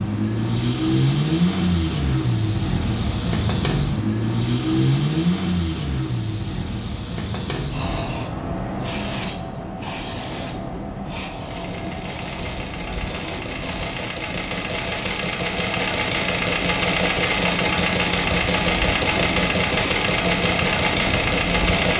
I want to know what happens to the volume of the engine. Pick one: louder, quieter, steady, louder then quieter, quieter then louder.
quieter then louder.